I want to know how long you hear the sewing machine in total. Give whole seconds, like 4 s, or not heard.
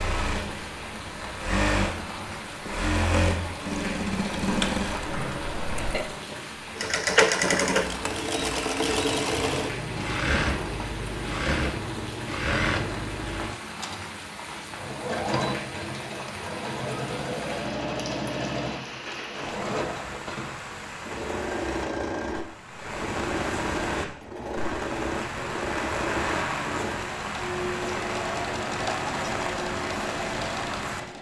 31 s.